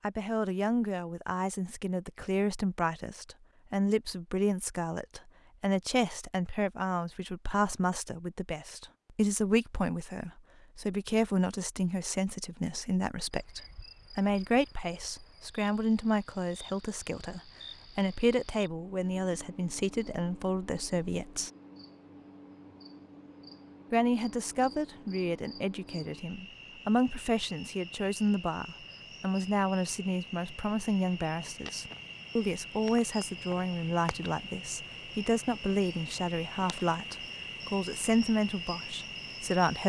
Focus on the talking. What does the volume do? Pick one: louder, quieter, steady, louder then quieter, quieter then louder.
steady.